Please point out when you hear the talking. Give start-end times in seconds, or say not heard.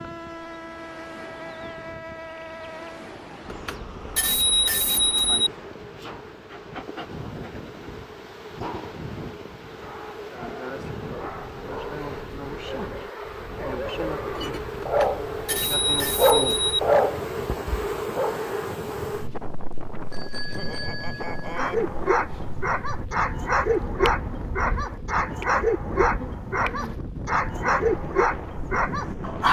not heard.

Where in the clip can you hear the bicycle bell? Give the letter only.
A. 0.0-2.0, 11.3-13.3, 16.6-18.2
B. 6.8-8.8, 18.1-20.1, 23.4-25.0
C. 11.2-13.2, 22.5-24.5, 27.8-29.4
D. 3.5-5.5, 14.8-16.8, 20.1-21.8
D.